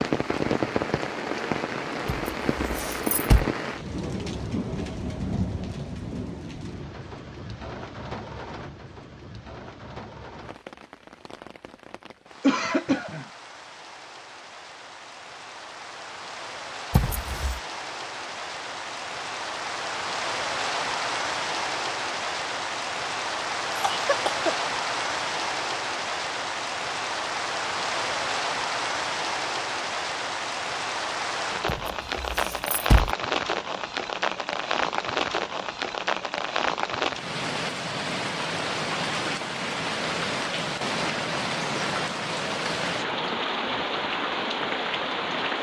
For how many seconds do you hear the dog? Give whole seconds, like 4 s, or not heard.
not heard.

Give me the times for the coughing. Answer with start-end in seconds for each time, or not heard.
12.4-13.2, 23.7-24.6.